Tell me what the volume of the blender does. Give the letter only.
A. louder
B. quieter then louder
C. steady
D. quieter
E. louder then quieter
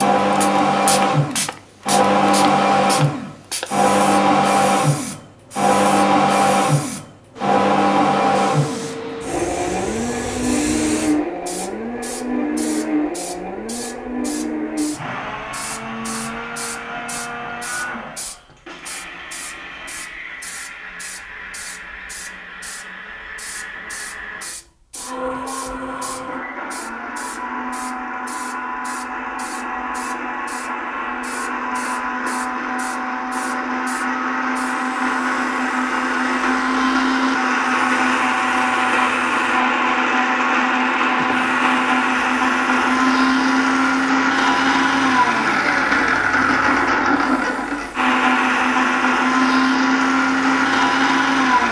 B.